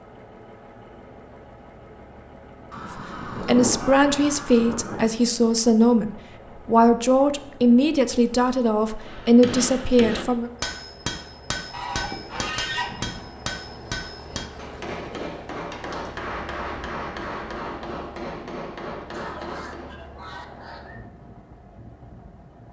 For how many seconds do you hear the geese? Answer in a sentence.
You can hear the geese for 6 seconds altogether.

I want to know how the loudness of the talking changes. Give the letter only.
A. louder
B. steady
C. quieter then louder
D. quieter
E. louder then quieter
B.